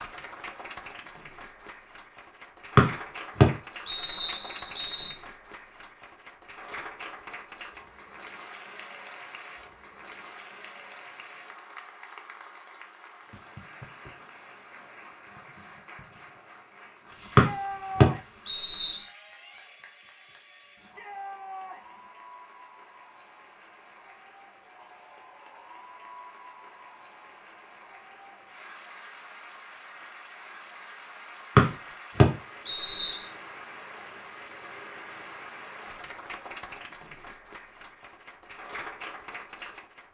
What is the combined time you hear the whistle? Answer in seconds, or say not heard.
6 s.